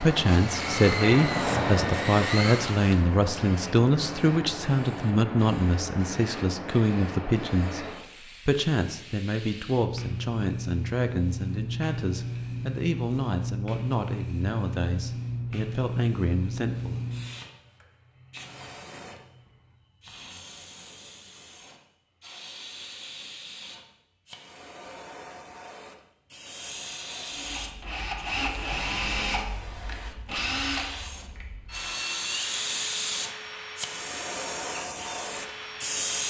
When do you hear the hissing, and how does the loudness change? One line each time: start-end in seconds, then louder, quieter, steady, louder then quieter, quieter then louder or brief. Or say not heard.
0.0-36.2 quieter then louder.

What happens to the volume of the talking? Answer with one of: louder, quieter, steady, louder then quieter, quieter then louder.
quieter.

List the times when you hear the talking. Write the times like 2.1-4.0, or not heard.
0.0-7.8, 8.4-17.0.